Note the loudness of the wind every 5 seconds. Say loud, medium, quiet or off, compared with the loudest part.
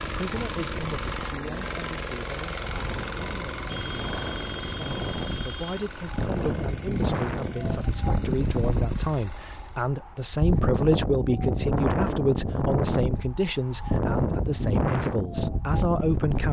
medium, loud, loud, loud.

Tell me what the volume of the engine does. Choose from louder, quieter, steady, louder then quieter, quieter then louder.
quieter.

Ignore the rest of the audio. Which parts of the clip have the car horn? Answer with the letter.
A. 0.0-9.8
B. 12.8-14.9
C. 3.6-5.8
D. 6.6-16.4
C.